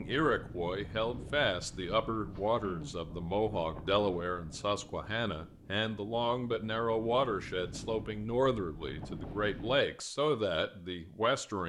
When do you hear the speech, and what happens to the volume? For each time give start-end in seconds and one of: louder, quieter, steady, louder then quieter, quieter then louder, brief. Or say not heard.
0.0-11.6 steady.